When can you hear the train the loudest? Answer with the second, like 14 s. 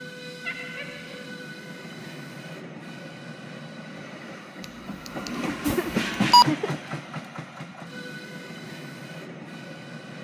6 s.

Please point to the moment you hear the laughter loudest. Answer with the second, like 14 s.
6 s.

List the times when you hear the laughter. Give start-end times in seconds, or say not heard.
0.5-1.2, 5.5-6.8.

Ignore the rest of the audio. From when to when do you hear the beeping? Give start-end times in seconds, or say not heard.
5.0-6.5.